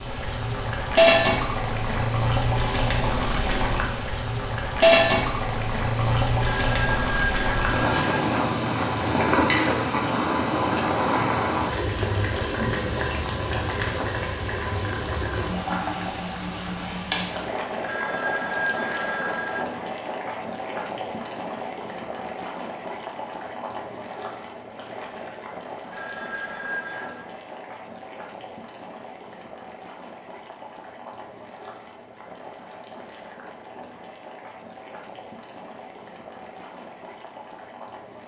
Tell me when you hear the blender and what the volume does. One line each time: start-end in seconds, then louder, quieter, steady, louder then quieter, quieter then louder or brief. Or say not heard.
not heard.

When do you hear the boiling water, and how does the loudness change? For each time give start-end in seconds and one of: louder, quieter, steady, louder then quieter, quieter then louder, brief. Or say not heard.
0.0-38.2 quieter.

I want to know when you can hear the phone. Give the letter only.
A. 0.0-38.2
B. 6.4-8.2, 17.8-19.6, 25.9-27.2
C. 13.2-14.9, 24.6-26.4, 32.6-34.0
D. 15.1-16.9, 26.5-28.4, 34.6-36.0
B.